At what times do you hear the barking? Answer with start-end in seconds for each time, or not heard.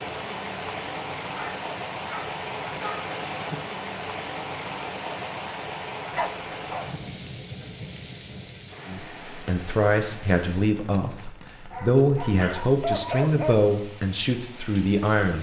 1.3-3.1, 6.1-6.8, 11.7-13.6.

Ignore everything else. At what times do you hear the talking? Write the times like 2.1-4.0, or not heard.
8.8-15.3.